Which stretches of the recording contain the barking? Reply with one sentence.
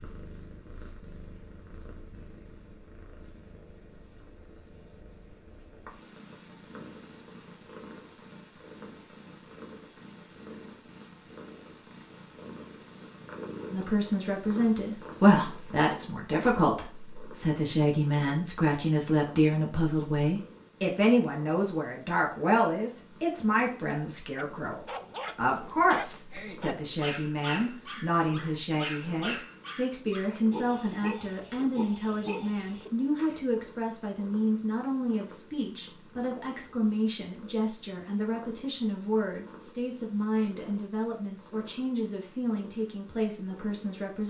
The barking can be heard from 24.4 to 33.4 s.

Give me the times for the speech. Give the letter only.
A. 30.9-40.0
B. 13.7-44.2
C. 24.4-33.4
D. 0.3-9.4
B.